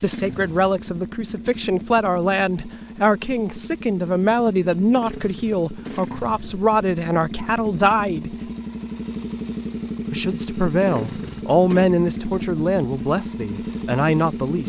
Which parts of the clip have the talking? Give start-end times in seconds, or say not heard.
0.0-8.3, 10.1-14.6.